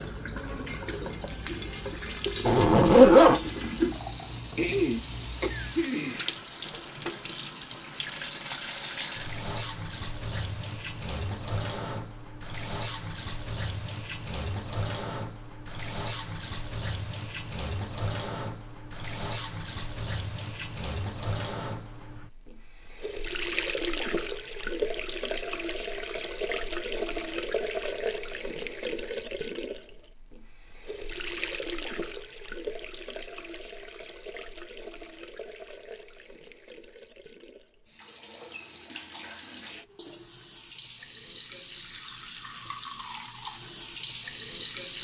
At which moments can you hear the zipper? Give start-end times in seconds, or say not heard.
2.5-3.4.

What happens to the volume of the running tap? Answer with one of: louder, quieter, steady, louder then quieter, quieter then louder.
quieter.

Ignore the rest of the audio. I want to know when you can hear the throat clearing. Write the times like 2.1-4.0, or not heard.
4.5-6.3.